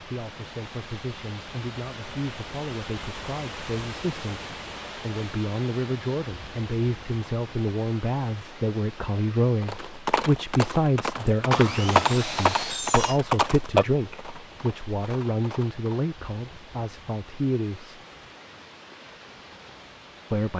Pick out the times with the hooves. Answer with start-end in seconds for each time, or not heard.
9.6-16.1.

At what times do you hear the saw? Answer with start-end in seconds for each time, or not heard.
11.5-13.2.